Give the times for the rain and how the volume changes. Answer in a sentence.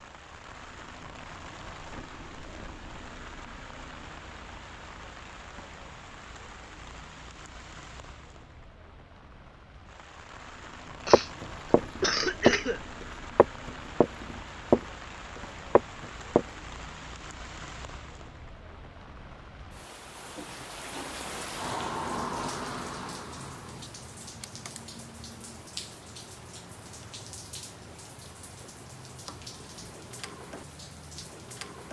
The rain can be heard from 0.0 to 31.8 s, getting louder then quieter.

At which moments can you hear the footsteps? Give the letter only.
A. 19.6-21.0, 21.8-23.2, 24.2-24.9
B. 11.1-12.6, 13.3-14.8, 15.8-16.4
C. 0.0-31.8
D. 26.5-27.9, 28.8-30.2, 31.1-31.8
B.